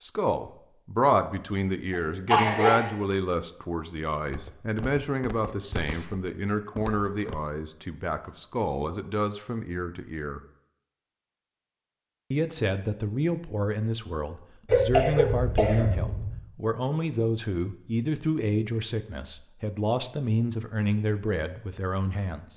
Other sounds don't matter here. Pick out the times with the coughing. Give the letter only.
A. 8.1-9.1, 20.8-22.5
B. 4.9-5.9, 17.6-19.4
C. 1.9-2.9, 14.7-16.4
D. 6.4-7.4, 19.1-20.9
C.